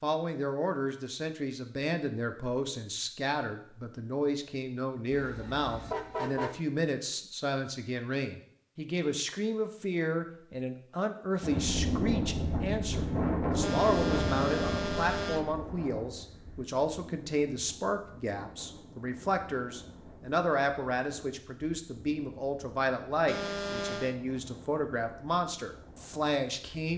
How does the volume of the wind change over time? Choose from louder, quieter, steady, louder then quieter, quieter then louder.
quieter.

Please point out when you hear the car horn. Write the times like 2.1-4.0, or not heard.
5.1-6.6, 13.6-15.6, 23.2-24.1.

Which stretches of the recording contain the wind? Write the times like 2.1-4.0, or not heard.
11.4-26.9.